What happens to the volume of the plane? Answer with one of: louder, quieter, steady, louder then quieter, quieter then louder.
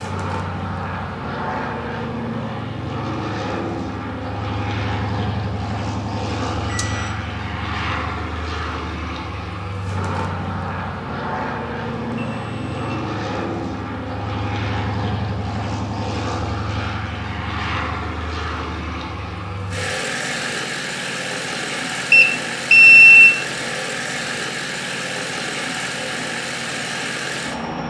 steady.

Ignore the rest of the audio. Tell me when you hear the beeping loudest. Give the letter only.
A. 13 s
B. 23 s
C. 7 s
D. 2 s
B.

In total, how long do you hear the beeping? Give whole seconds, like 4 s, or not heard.
3 s.